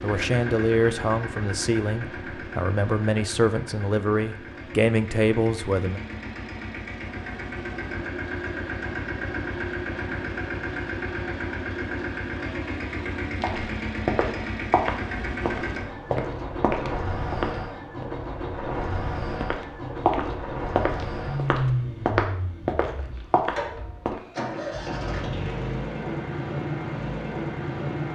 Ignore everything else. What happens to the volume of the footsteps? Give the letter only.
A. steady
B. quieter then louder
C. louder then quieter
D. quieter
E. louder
A.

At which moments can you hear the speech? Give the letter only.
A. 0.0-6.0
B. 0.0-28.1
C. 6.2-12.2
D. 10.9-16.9
A.